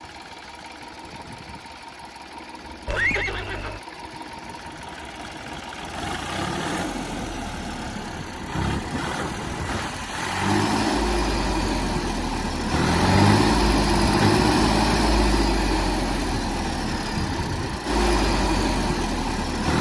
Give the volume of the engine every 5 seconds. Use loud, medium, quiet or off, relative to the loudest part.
quiet, medium, loud, loud.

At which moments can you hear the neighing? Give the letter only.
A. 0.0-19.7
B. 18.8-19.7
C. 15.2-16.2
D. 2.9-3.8
D.